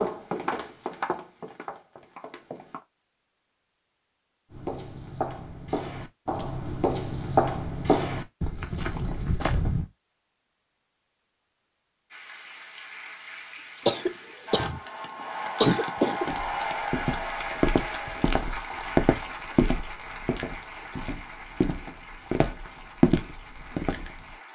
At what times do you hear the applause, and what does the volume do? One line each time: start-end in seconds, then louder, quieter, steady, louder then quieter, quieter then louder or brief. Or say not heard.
12.1-24.5 louder then quieter.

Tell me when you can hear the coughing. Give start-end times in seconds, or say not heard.
13.8-14.8, 15.6-16.3.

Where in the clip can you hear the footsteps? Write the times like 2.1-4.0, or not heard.
0.0-2.8, 4.5-9.8, 16.2-24.4.